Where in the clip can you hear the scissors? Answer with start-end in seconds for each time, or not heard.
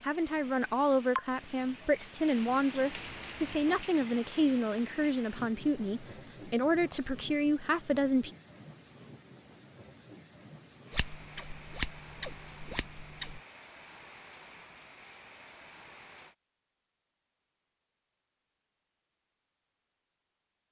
2.9-3.8, 10.9-13.4.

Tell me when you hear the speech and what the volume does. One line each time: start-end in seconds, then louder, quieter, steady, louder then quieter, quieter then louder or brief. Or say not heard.
0.0-8.3 steady.